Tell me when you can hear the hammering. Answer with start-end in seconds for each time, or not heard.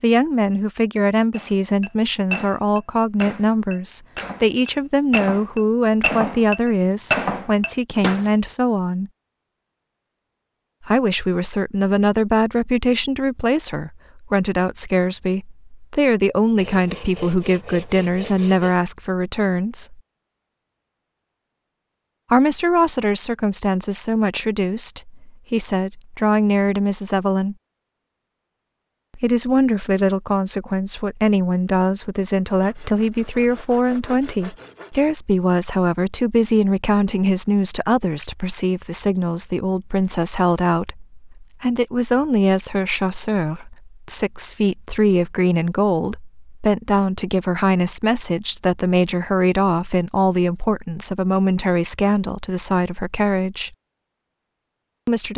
1.3-8.3.